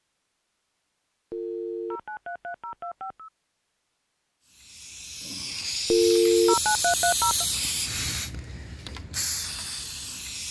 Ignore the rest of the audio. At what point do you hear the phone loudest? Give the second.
6 s.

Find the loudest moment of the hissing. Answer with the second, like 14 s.
7 s.